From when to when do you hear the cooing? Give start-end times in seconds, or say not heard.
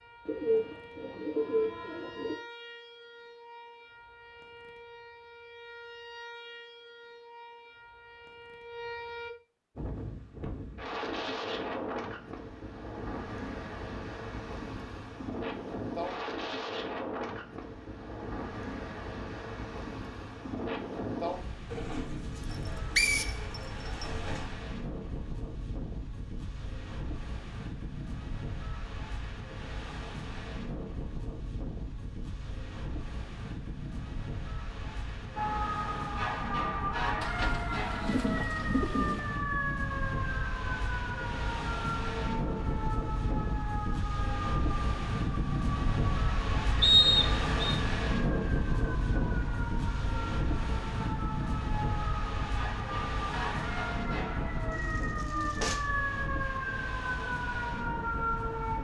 0.2-2.4, 21.7-24.6, 37.2-39.2, 54.7-55.9.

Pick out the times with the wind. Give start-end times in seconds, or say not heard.
9.8-58.7.